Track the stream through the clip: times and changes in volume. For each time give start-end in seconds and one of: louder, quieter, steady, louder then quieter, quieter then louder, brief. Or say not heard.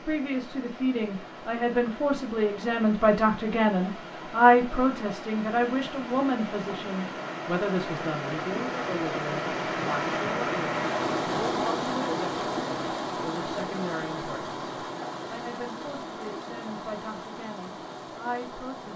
0.0-18.9 louder then quieter.